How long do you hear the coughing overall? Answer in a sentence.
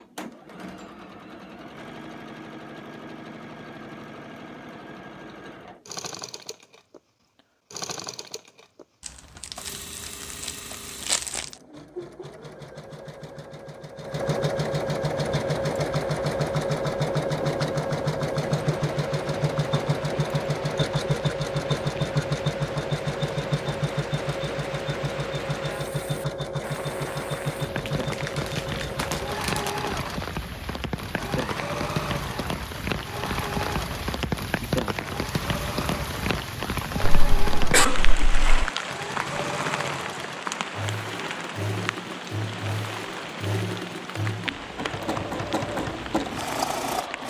The coughing can be heard for 2 seconds in total.